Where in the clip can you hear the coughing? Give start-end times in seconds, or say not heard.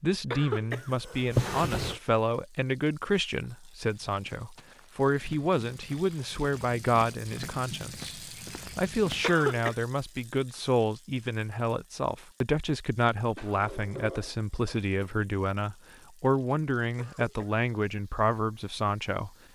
0.3-1.3, 9.2-9.8, 16.9-17.6.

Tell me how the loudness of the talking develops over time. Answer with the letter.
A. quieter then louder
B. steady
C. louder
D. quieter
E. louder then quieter
B.